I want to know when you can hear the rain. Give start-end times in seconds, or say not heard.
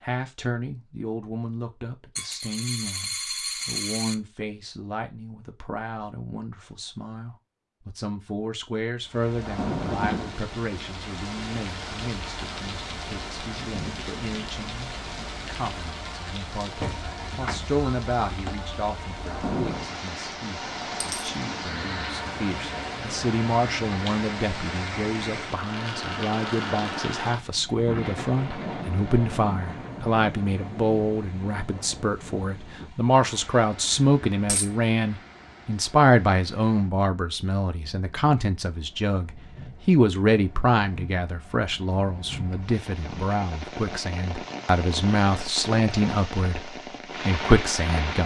9.1-48.2.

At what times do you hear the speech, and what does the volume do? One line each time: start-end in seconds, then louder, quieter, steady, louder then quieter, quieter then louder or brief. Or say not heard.
0.0-48.2 louder.